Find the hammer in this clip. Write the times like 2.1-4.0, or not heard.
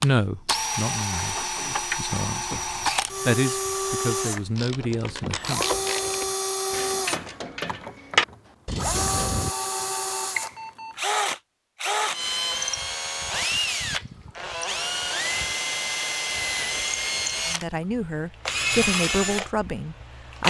not heard.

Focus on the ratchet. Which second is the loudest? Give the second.
8 s.